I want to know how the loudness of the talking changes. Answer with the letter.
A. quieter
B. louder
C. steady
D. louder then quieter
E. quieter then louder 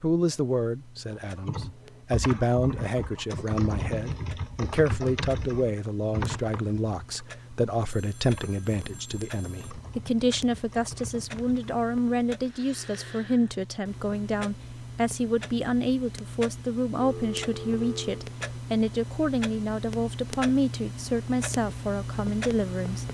C.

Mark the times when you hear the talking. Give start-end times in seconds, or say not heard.
0.0-23.0.